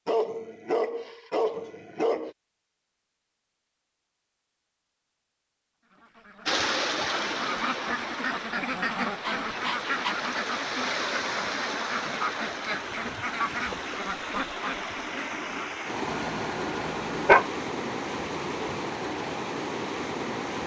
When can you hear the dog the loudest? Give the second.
17 s.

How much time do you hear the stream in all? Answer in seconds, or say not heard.
14 s.